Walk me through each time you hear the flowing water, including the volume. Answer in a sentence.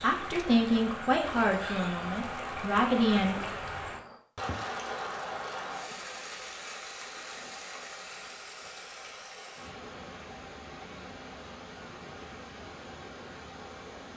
You can hear the flowing water from 0.0 to 14.1 s, getting quieter.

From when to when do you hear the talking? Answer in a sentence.
The talking can be heard from 0.0 to 3.4 s.